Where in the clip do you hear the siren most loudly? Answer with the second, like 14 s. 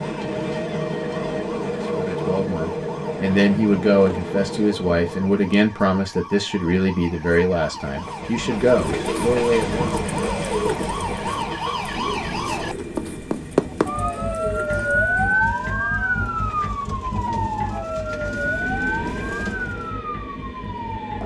15 s.